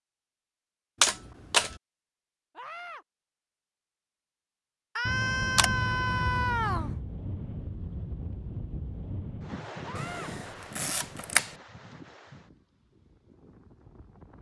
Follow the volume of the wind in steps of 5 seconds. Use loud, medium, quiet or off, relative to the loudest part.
off, loud, medium.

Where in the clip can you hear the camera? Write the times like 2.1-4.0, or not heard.
1.0-1.8, 5.0-7.0, 9.9-11.5.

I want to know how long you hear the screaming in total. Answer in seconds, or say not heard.
3 s.